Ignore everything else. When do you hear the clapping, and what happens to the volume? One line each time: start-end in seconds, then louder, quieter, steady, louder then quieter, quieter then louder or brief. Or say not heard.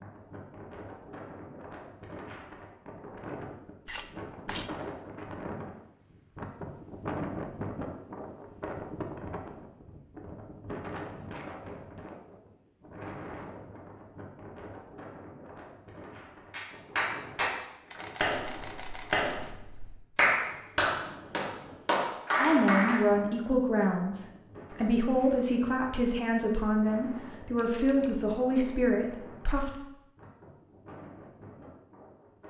16.5-23.1 steady.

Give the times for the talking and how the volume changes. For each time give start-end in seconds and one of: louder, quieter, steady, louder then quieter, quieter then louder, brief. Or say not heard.
22.4-29.8 steady.